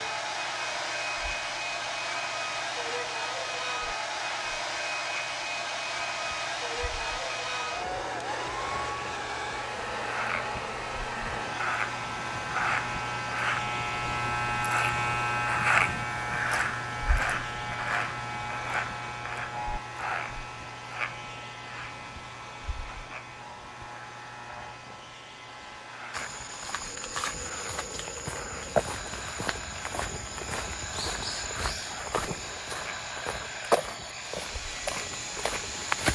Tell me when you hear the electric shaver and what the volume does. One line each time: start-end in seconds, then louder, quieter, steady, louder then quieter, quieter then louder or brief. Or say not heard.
0.0-36.0 louder then quieter.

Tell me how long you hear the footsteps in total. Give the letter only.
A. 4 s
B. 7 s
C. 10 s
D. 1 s
C.